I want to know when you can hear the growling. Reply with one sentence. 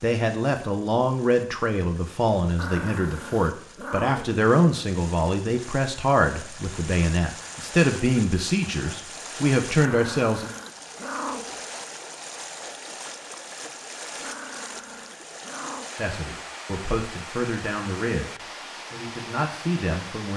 You can hear the growling from 2.5 to 4.2 s, from 9.8 to 11.6 s and from 14.2 to 15.9 s.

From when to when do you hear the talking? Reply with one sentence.
The talking can be heard from 0.0 to 10.5 s and from 15.9 to 20.3 s.